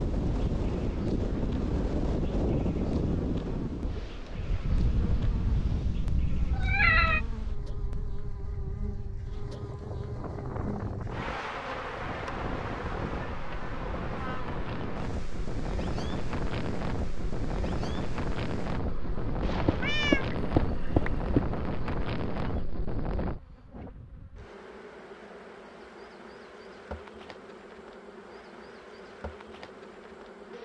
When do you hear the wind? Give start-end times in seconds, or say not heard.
0.0-23.4.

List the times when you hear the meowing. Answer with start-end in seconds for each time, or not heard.
4.7-7.2, 19.4-21.4.